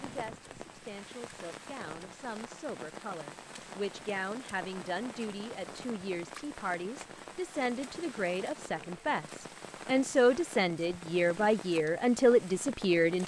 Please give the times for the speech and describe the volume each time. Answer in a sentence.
You can hear the speech from 0.0 to 13.2 s, getting louder.